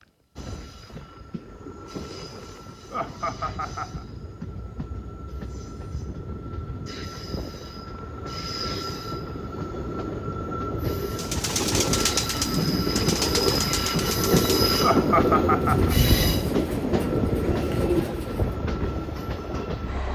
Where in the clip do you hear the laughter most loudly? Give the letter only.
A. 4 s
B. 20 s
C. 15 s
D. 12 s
C.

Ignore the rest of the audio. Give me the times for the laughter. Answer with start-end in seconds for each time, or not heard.
2.9-4.0, 14.8-15.9.